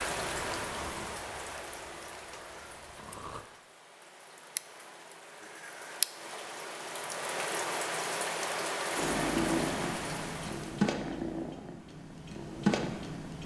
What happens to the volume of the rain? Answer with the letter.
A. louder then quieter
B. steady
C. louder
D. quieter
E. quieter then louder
E.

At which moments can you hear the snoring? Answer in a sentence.
You can hear the snoring from 0.0 to 3.5 s.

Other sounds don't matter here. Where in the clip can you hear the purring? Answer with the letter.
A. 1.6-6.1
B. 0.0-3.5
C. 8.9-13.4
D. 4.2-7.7
C.